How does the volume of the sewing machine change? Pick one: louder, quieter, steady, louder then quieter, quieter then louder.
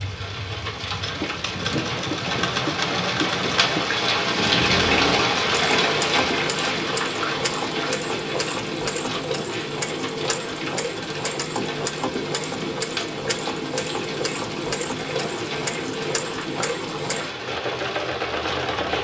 steady.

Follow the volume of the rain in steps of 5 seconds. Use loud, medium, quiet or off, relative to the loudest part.
loud, loud, medium, medium.